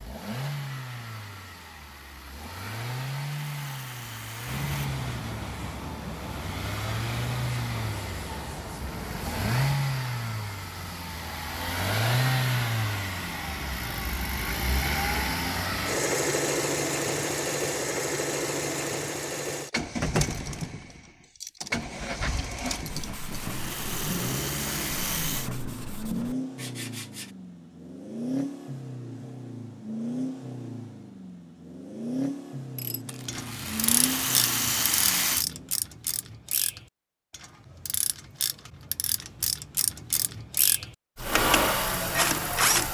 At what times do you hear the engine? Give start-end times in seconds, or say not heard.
0.0-35.8, 41.1-42.8.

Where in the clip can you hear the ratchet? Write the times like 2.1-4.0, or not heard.
32.8-42.8.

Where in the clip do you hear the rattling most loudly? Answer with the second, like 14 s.
35 s.